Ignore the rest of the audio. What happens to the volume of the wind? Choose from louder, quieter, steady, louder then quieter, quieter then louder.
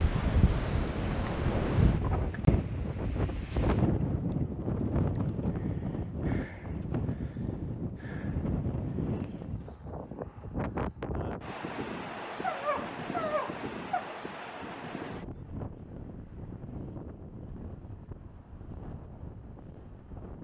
quieter.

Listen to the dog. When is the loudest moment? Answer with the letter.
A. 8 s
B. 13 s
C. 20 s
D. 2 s
B.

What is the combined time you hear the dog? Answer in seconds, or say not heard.
2 s.